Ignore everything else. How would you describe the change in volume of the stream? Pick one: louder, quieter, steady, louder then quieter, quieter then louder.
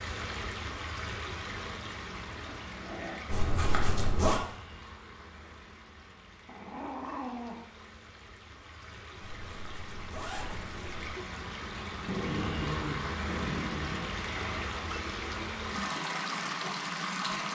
quieter then louder.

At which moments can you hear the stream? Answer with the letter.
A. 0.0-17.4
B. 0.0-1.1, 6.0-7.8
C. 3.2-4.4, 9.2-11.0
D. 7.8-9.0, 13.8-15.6
A.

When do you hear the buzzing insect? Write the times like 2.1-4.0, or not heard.
not heard.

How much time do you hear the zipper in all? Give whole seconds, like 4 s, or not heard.
3 s.